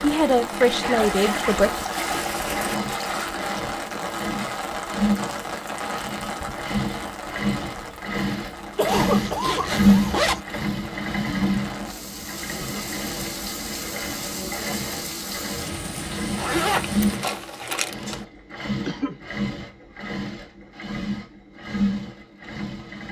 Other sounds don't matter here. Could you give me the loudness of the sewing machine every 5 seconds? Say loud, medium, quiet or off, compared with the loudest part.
medium, loud, medium, medium, medium.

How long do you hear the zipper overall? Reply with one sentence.
You can hear the zipper for 5 seconds altogether.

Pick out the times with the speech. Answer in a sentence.
The speech can be heard from 0.0 to 1.7 s.